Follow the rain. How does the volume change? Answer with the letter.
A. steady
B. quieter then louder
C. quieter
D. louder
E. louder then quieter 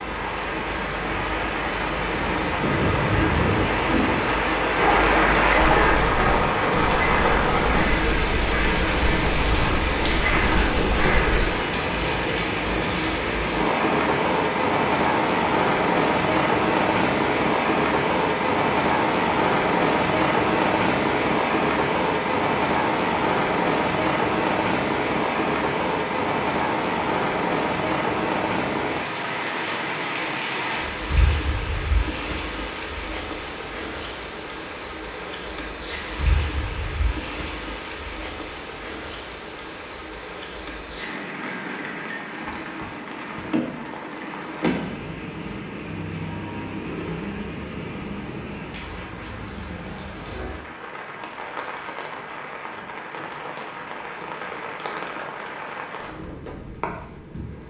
C.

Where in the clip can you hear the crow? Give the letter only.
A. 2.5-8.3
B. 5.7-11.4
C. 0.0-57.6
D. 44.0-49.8
B.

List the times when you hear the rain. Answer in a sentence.
You can hear the rain from 0.0 to 57.6 s.